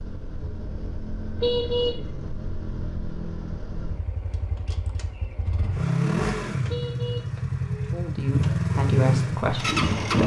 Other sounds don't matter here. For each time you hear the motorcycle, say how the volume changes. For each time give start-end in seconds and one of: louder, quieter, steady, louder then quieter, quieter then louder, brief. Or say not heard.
0.0-10.2 louder.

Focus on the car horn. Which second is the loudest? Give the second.
2 s.